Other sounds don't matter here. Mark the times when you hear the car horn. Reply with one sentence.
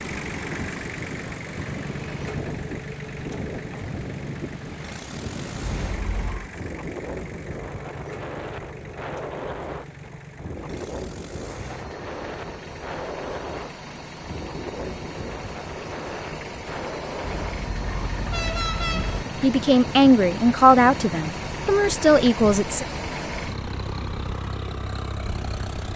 You can hear the car horn from 5.6 to 6.5 s and from 17.2 to 19.2 s.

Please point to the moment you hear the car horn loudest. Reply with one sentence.
The loudest moment of the car horn is at 19 seconds.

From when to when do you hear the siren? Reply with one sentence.
The siren can't be heard in this clip.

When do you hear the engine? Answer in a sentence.
You can hear the engine from 0.0 to 25.9 s.